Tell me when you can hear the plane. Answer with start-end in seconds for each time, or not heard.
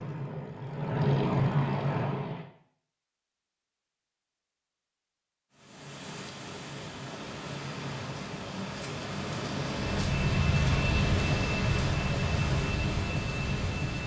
0.0-2.5, 9.7-14.0.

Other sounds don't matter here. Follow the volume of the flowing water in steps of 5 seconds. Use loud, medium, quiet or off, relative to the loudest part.
off, loud, loud.